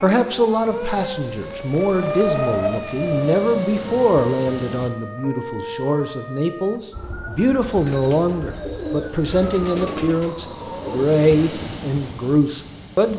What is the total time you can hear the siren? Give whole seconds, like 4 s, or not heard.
11 s.